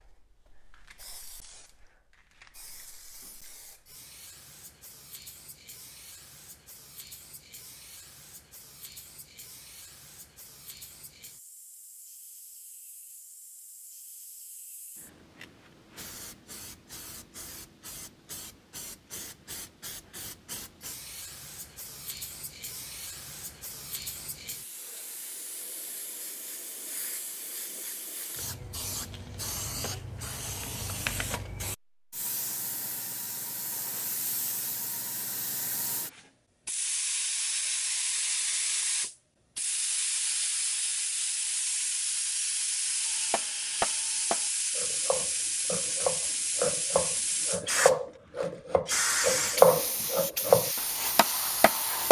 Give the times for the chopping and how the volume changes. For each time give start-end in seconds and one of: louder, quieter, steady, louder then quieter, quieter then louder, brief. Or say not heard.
43.3-52.0 louder.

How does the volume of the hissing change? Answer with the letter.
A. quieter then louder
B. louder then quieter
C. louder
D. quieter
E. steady
C.